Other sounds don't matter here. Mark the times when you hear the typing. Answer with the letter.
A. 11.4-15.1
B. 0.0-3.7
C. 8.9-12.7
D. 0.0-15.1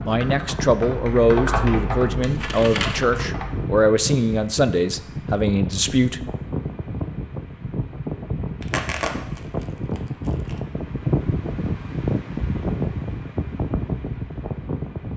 B.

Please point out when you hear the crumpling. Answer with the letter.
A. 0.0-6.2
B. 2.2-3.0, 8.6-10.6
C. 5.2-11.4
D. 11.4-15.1
B.